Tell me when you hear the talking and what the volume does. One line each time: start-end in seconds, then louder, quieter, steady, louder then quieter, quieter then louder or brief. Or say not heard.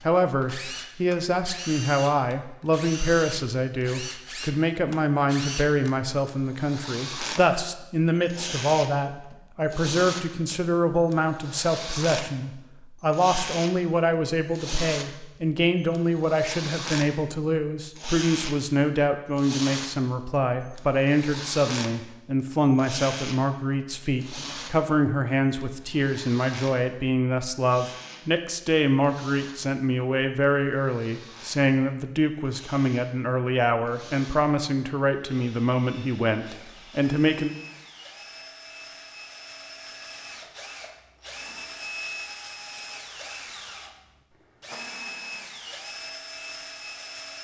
0.0-37.5 steady.